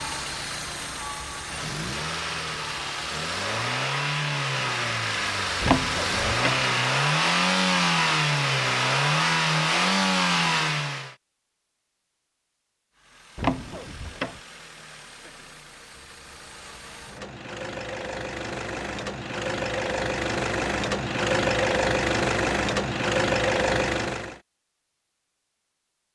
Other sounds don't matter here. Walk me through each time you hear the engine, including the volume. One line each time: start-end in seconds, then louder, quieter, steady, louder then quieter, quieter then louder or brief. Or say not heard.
0.0-11.2 louder
12.9-24.4 louder.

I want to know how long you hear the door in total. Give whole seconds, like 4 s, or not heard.
2 s.